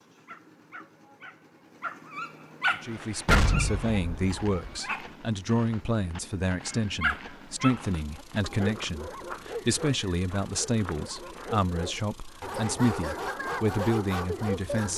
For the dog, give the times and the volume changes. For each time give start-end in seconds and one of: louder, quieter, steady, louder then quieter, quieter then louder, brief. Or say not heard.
0.1-5.0 louder then quieter
6.7-14.9 quieter then louder.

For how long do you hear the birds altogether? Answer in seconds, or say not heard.
not heard.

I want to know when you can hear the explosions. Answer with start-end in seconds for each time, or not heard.
3.2-4.8.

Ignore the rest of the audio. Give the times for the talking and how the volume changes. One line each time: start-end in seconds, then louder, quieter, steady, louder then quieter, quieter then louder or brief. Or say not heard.
2.8-14.9 steady.